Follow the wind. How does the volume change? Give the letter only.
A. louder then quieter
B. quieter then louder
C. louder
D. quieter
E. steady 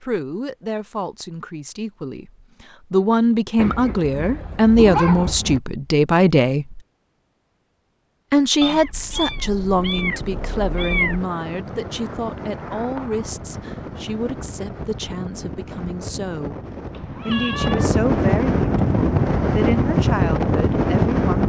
C.